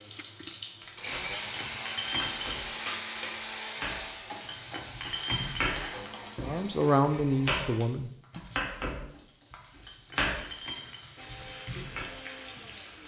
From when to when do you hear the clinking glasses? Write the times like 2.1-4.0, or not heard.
1.3-2.6, 4.5-6.0, 9.8-11.0.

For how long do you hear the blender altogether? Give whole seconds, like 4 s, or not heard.
10 s.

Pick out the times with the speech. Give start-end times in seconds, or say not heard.
6.4-8.4.